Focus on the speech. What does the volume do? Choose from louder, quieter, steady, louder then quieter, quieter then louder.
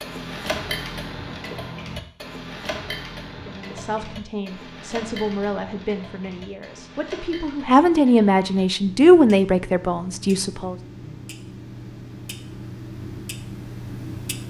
louder.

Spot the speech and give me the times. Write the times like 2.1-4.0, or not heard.
3.5-10.8.